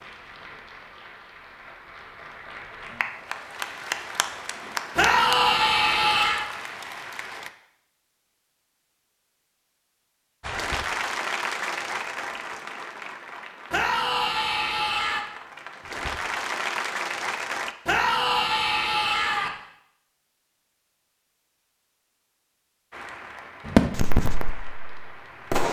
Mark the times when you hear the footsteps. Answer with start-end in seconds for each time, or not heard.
not heard.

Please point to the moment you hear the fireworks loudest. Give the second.
24 s.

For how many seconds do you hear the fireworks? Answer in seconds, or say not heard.
2 s.